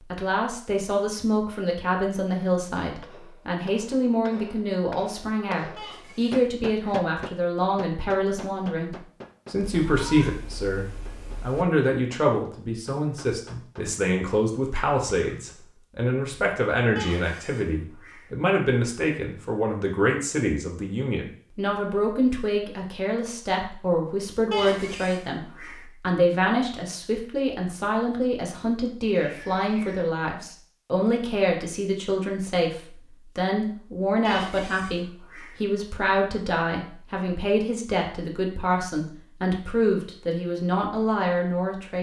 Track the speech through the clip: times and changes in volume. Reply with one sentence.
You can hear the speech from 0.1 to 41.9 s, at a steady volume.